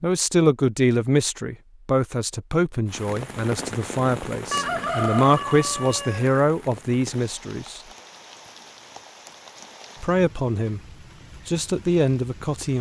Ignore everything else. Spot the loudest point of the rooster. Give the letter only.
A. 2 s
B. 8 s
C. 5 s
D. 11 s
C.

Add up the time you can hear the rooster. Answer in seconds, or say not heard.
2 s.